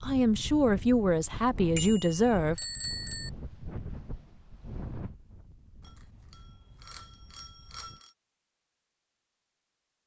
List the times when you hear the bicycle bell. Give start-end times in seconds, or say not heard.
1.8-3.3, 5.8-8.2.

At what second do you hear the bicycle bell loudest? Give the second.
3 s.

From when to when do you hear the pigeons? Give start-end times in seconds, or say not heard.
not heard.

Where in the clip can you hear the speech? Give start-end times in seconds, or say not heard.
0.0-2.5.